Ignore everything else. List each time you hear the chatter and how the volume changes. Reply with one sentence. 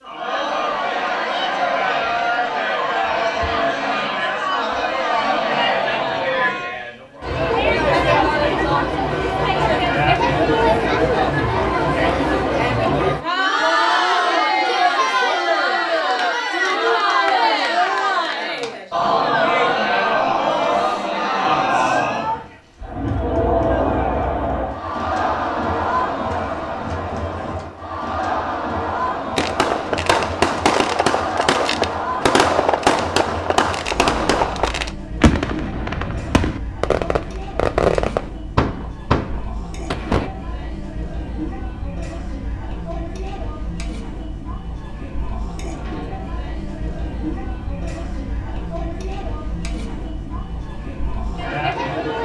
You can hear the chatter from 0.0 to 52.2 s, getting quieter.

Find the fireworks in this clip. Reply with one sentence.
You can hear the fireworks from 29.4 to 40.3 s.